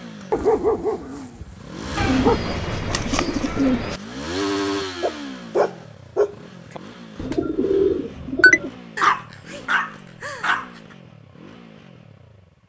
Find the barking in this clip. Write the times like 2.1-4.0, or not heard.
0.3-2.5, 5.0-6.8, 8.9-10.7.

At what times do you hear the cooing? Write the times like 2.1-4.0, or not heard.
1.9-4.0, 7.2-8.7.